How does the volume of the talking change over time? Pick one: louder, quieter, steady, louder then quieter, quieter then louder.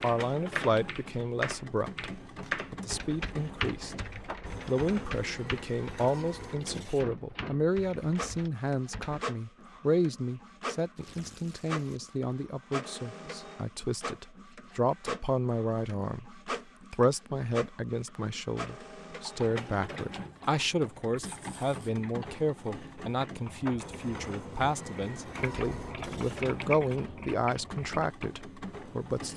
steady.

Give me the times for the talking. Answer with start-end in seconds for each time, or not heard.
0.0-29.3.